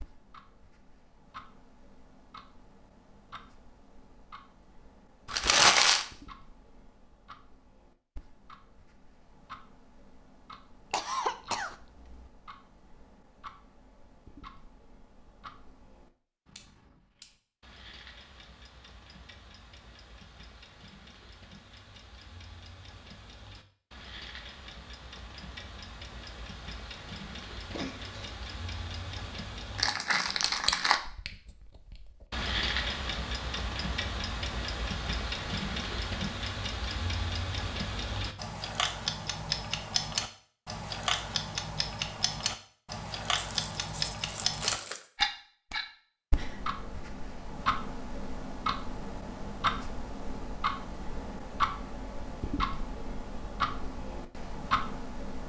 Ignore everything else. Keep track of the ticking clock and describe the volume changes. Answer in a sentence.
The loudness of the ticking clock goes up.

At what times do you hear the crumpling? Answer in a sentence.
You can hear the crumpling from 5.3 to 6.0 s, from 29.8 to 31.0 s and from 43.4 to 45.0 s.